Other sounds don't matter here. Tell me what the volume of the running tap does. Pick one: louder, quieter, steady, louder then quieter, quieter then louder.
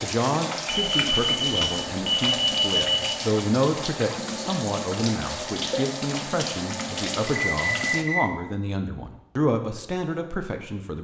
steady.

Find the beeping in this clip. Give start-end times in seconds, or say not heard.
0.7-3.1, 7.2-8.3.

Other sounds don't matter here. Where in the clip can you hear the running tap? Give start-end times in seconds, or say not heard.
0.0-8.1.